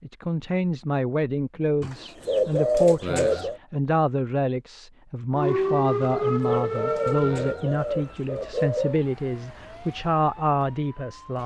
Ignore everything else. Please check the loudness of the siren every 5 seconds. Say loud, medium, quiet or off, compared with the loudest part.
off, loud, quiet.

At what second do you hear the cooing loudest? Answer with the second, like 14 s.
3 s.